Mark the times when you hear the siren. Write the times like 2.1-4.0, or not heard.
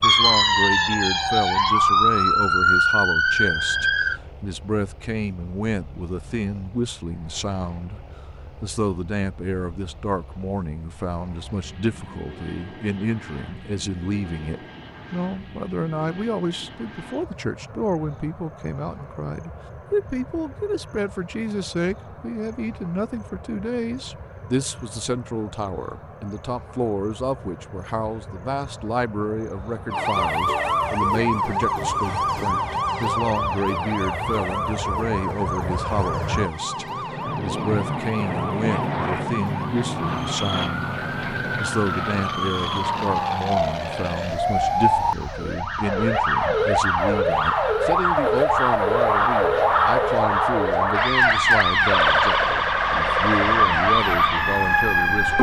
0.0-4.2, 29.9-55.3.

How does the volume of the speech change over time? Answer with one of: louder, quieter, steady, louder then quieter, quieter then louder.
steady.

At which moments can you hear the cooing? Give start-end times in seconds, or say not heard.
not heard.